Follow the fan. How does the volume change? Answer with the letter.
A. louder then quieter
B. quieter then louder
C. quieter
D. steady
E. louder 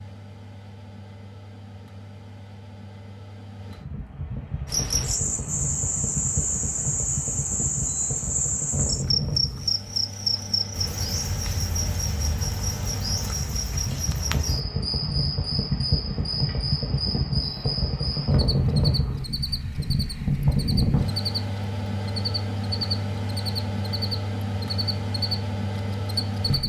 A.